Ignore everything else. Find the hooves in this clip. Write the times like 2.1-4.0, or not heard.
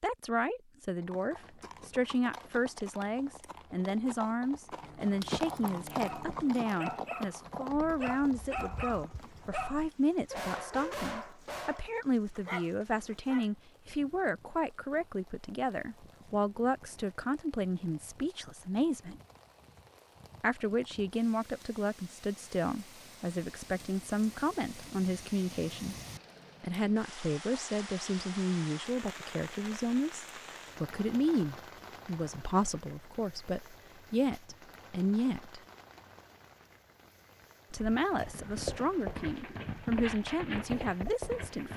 0.9-9.5, 37.8-41.7.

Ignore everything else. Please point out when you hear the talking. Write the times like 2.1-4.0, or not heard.
0.0-19.2, 20.4-25.9, 26.6-35.6, 37.7-41.7.